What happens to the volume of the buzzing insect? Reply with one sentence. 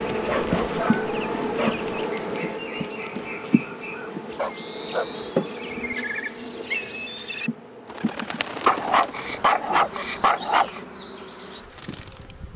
The volume of the buzzing insect goes down.